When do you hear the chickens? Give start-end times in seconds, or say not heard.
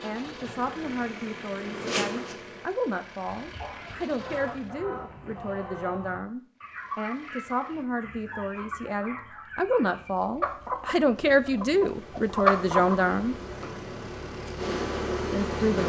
3.2-12.9.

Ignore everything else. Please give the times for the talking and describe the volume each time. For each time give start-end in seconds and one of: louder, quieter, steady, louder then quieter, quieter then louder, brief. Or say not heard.
0.0-13.3 louder
15.3-15.8 brief.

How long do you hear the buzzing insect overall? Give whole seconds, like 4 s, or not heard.
7 s.